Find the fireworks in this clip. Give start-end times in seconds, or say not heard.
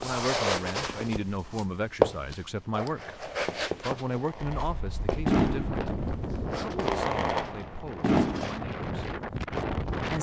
3.1-8.7.